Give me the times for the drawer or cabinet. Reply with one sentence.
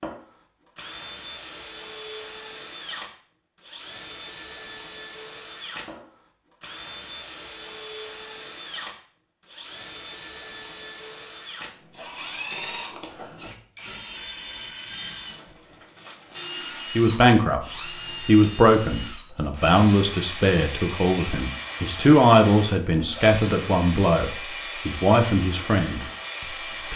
The drawer or cabinet can't be heard in this clip.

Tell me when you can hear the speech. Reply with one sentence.
The speech can be heard from 16.9 to 26.1 s.